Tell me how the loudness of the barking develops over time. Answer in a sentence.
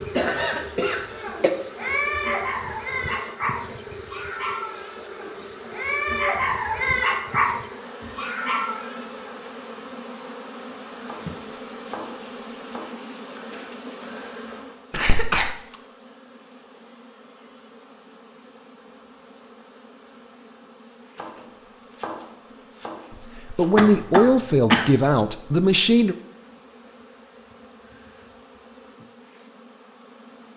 The volume of the barking goes down, then up.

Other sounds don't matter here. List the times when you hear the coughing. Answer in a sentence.
You can hear the coughing from 0.1 to 1.5 s, from 14.9 to 15.6 s and from 23.8 to 24.9 s.